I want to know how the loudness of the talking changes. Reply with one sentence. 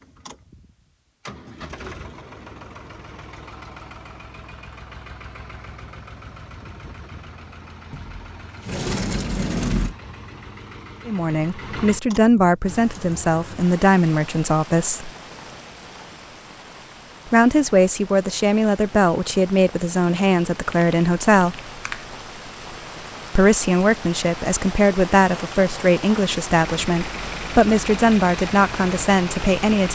The loudness of the talking stays about the same.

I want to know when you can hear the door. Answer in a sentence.
You can hear the door from 7.9 to 9.9 s.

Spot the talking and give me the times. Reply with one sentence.
The talking can be heard from 11.1 to 15.1 s, from 17.3 to 21.6 s and from 23.4 to 29.9 s.